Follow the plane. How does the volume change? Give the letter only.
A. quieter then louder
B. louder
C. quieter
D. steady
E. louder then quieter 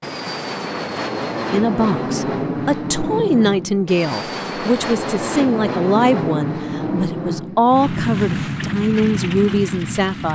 D.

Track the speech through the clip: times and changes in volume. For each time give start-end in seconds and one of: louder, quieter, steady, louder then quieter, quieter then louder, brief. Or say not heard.
1.5-10.3 steady.